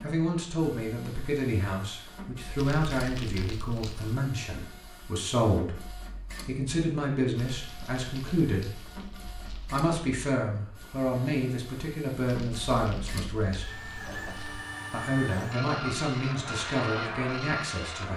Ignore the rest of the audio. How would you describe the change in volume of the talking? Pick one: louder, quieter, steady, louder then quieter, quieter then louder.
steady.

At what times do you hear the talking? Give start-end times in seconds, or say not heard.
0.0-8.8, 9.6-13.8, 14.9-18.1.